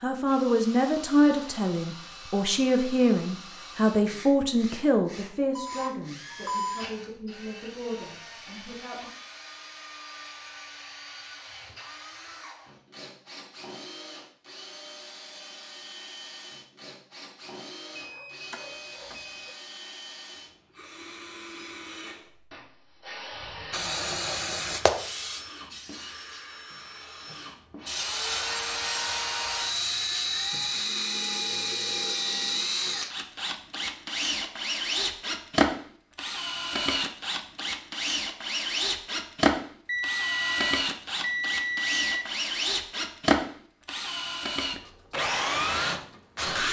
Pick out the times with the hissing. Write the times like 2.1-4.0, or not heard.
23.7-30.8.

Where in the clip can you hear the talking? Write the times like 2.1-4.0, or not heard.
0.0-9.1.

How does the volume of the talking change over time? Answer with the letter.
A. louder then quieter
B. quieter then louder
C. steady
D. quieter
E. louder
D.